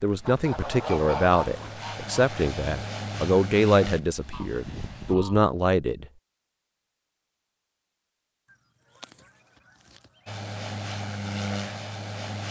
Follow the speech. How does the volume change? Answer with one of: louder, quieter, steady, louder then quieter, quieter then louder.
steady.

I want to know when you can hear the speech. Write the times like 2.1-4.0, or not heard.
0.0-6.0.